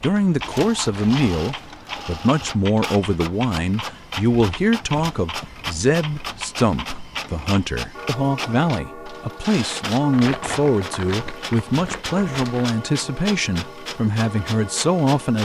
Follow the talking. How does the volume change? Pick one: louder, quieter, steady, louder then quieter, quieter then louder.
steady.